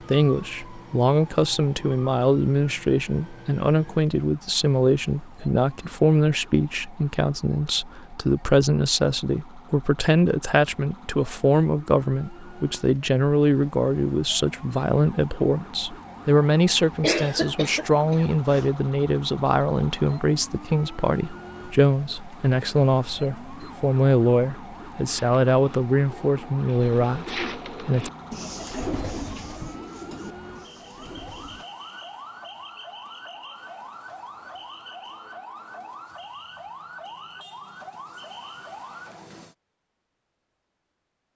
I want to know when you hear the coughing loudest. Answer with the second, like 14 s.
17 s.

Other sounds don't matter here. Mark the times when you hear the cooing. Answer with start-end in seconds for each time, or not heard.
25.1-31.6.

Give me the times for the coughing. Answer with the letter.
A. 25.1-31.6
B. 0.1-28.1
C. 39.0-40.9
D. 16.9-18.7
D.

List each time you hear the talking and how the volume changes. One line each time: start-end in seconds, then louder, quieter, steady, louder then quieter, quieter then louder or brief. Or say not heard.
0.1-28.1 steady.